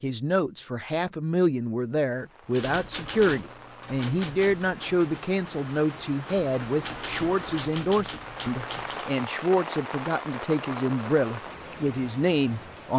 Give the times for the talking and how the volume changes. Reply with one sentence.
You can hear the talking from 0.0 to 12.9 s, at a steady volume.